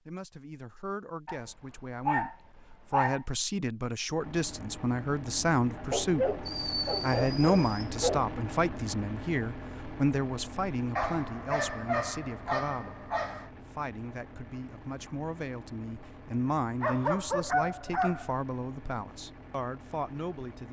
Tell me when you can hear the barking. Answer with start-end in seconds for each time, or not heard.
1.2-3.2, 5.9-8.3, 10.9-13.5, 16.8-18.4.